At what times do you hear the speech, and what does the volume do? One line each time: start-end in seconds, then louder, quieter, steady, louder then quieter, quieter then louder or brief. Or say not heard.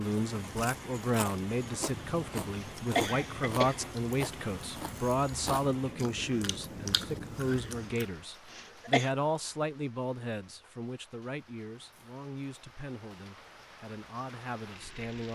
0.0-15.2 quieter.